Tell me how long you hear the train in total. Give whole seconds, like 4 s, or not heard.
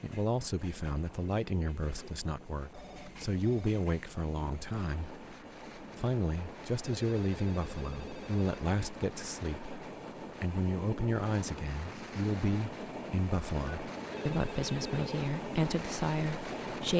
17 s.